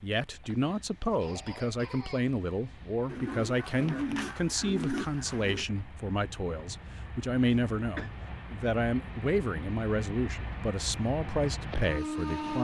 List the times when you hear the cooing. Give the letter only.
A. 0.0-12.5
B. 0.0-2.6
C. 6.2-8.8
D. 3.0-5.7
D.